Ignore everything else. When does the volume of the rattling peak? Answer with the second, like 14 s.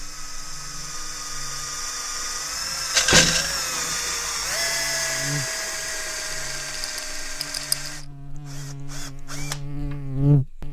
3 s.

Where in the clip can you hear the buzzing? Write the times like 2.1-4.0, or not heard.
0.0-10.6.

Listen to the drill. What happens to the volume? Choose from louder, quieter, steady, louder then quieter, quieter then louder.
louder then quieter.